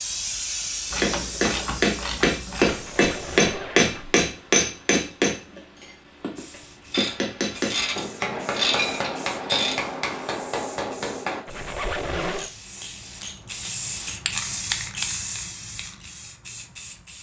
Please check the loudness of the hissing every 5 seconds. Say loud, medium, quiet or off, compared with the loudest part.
loud, quiet, loud, loud.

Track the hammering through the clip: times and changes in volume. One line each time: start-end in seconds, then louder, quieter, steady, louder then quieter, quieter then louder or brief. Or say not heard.
1.0-11.4 quieter.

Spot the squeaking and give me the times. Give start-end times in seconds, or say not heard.
2.6-4.2, 11.4-12.5.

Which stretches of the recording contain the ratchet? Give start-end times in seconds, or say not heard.
0.9-2.8, 6.9-9.8, 12.3-14.2.